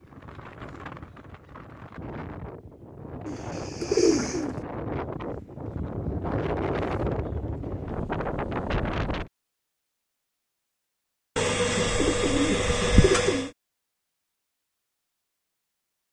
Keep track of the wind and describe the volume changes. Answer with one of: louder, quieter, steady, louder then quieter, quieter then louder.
louder.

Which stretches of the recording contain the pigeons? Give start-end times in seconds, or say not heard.
3.2-4.6, 11.3-13.5.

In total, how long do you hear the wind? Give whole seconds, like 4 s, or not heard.
9 s.